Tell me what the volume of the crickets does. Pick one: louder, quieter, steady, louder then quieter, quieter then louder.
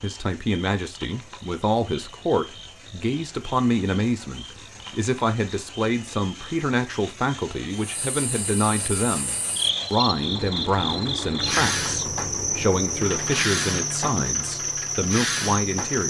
louder.